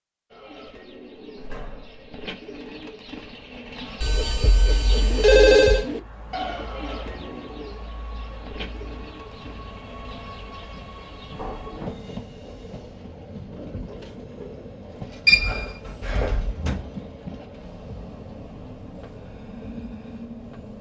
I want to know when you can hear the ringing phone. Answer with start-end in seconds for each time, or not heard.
4.0-5.8, 15.2-16.6.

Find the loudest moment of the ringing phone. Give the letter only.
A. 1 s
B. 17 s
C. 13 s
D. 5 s
D.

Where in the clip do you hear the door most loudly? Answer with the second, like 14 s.
17 s.